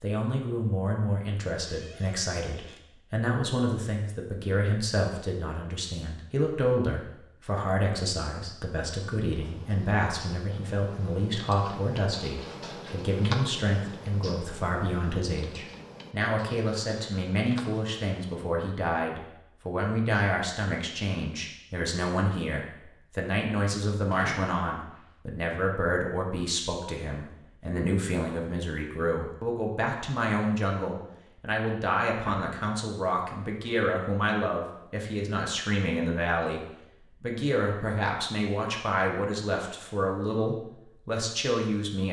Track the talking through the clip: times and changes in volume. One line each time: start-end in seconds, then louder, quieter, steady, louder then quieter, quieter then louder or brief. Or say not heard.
0.0-42.0 steady.